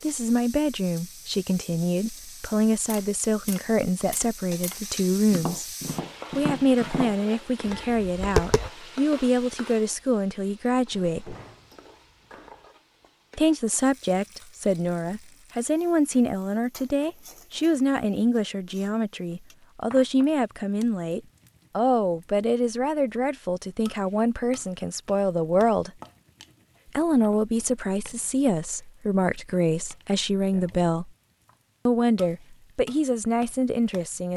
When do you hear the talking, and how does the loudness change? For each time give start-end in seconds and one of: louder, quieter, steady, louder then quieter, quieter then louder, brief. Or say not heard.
0.0-5.7 steady
6.3-11.3 steady
13.3-25.9 steady
26.9-31.1 steady
31.9-34.3 brief.